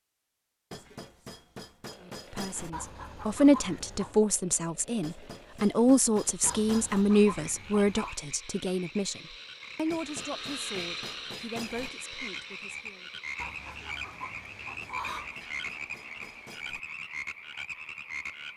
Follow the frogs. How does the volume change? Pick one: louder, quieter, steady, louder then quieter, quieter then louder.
louder.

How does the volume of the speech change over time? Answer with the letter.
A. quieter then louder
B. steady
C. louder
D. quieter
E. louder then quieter
D.